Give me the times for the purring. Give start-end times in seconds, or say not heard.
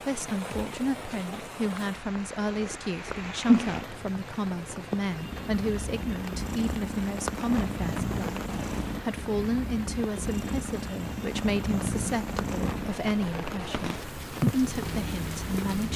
0.0-15.9.